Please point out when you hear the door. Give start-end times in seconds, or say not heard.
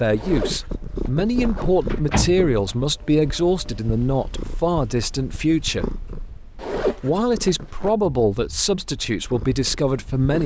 1.9-2.8.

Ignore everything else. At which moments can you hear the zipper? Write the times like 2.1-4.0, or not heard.
0.1-2.0, 6.6-8.0.